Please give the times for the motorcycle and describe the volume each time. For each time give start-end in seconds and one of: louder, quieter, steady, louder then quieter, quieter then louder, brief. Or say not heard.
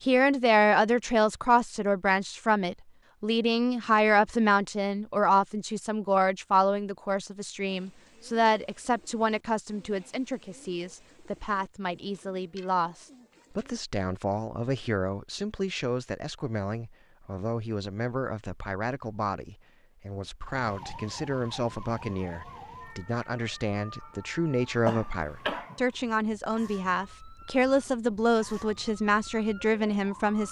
not heard.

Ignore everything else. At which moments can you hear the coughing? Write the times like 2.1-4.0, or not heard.
24.9-25.8.